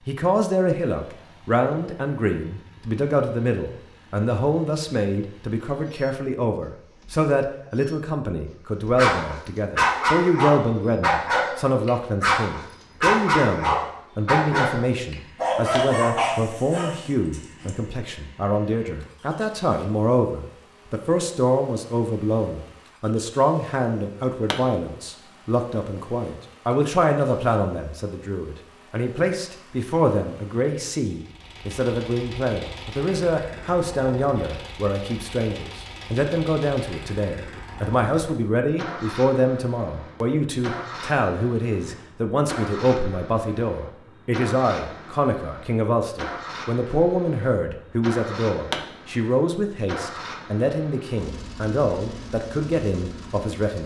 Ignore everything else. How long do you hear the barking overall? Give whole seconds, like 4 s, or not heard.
9 s.